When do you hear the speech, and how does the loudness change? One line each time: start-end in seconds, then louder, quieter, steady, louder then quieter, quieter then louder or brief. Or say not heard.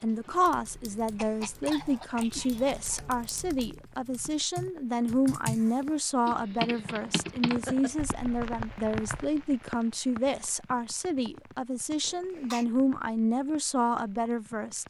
0.0-14.8 steady.